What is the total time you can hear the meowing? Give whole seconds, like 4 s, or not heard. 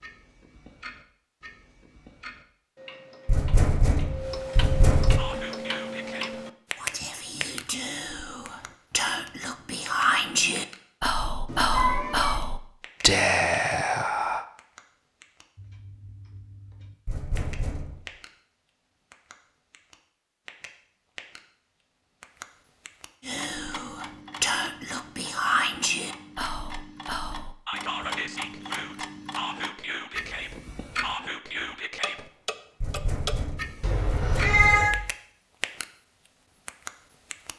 2 s.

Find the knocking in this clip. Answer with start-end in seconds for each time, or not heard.
3.2-5.2, 17.1-18.1, 32.8-34.7.